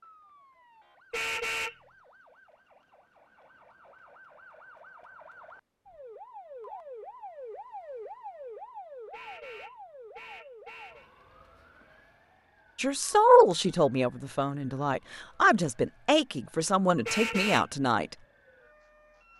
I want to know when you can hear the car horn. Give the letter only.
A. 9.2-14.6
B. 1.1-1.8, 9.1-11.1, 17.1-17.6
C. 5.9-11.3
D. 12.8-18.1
B.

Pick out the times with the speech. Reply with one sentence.
You can hear the speech from 12.8 to 18.1 s.